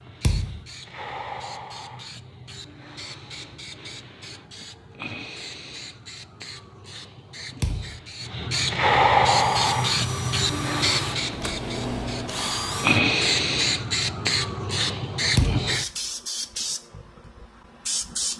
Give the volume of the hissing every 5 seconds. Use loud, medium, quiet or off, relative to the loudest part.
quiet, loud, loud, loud.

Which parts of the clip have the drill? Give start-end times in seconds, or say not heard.
9.3-13.0.